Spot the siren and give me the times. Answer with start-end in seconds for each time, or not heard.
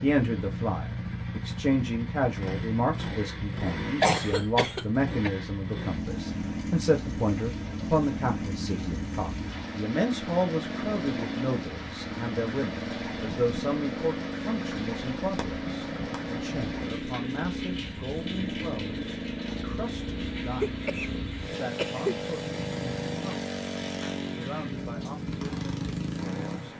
not heard.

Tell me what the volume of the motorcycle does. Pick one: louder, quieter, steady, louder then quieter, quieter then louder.
steady.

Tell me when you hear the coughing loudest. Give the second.
4 s.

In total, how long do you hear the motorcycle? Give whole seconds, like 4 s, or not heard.
27 s.